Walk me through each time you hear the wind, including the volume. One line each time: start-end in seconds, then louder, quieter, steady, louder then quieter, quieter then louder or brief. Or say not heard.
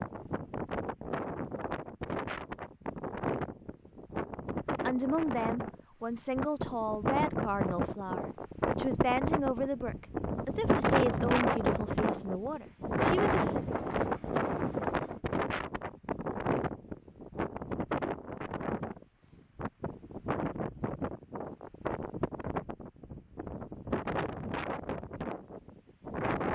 0.0-26.5 louder then quieter.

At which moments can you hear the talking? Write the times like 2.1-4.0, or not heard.
4.8-13.6.